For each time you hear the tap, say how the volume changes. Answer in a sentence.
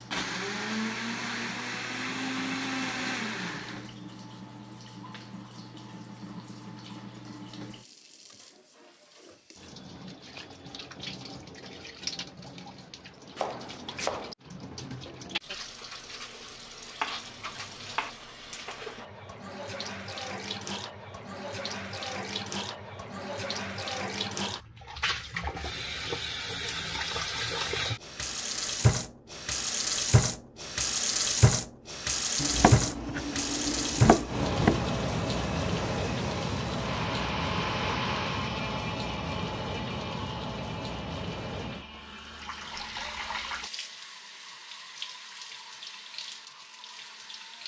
You can hear the tap from 0.0 to 47.6 s, getting louder then quieter.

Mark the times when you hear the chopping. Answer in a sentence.
You can hear the chopping from 13.3 to 14.3 s, from 17.0 to 18.1 s and from 32.4 to 34.8 s.